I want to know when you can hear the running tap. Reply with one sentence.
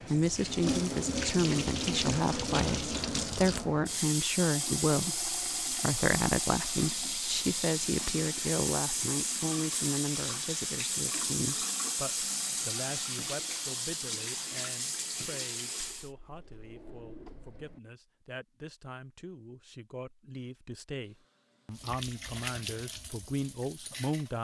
You can hear the running tap from 0.0 to 16.1 s and from 21.1 to 24.3 s.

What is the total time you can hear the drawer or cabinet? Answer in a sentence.
You can hear the drawer or cabinet for 2 seconds altogether.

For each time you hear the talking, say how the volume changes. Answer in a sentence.
You can hear the talking from 0.1 to 24.3 s, getting quieter then louder.